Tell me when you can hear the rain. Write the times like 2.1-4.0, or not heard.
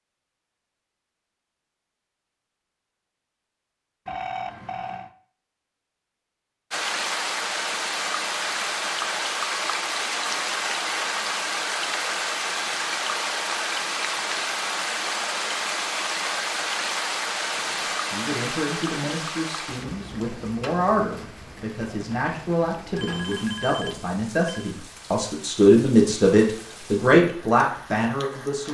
6.7-28.7.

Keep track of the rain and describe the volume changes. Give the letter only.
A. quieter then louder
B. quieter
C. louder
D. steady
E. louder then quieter
B.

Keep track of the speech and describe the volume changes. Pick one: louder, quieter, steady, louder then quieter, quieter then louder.
louder.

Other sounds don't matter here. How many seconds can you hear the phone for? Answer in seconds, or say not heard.
3 s.